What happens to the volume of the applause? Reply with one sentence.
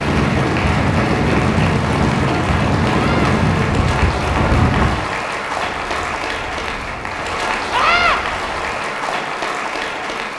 The loudness of the applause stays about the same.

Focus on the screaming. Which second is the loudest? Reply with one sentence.
The volume of the screaming peaks at 8 seconds.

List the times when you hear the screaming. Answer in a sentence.
You can hear the screaming from 2.9 to 3.4 s and from 7.7 to 8.2 s.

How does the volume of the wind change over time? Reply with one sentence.
The loudness of the wind goes down.